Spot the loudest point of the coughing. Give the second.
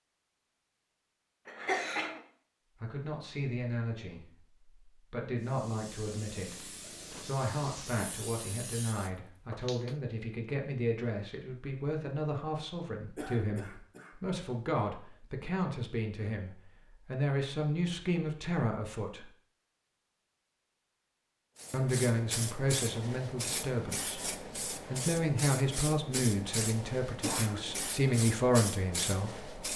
2 s.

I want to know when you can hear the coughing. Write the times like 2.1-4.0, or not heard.
1.4-2.2, 13.2-14.2, 27.1-27.8.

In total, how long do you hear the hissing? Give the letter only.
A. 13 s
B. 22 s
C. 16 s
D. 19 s
A.